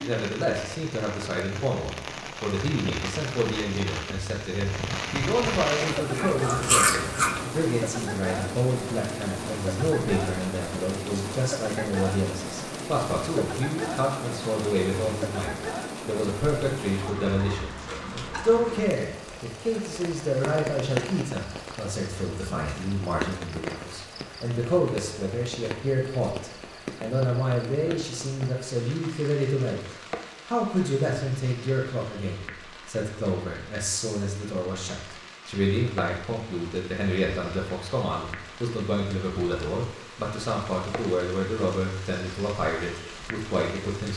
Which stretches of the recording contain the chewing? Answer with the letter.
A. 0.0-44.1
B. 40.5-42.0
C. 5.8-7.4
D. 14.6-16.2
C.